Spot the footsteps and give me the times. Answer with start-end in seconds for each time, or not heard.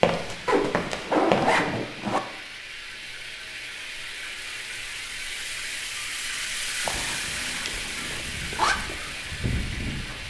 0.0-1.6, 6.7-10.2.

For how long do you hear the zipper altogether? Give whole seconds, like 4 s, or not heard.
4 s.